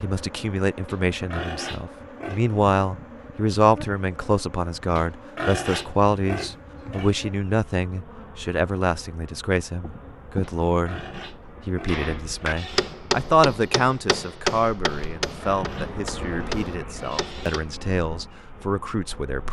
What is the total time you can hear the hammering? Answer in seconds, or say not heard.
6 s.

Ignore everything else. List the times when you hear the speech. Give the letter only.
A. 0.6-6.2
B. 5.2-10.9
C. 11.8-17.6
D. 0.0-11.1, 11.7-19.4
D.